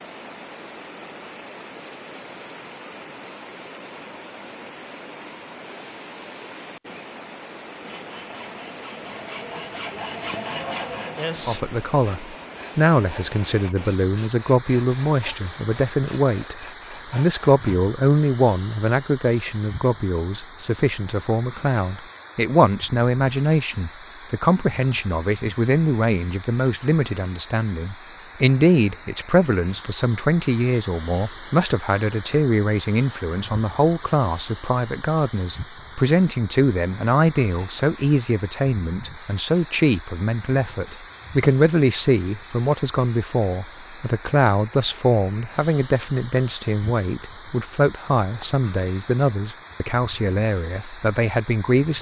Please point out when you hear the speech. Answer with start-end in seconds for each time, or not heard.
11.4-51.9.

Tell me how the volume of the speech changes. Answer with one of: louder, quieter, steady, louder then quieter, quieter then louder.
steady.